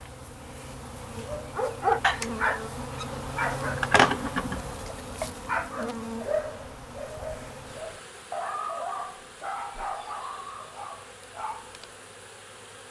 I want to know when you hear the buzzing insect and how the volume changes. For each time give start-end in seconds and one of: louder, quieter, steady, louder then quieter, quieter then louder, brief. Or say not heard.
0.0-12.8 quieter.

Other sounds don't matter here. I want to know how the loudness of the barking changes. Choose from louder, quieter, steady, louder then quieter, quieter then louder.
quieter.